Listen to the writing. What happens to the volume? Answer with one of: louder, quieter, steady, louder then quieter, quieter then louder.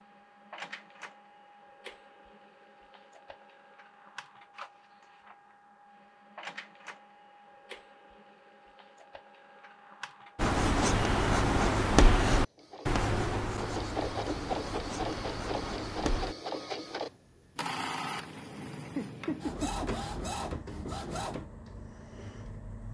quieter.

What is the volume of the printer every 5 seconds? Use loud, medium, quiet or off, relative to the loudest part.
quiet, quiet, loud, loud, loud.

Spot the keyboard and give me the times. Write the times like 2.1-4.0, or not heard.
not heard.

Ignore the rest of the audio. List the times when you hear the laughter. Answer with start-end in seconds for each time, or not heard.
18.8-19.9.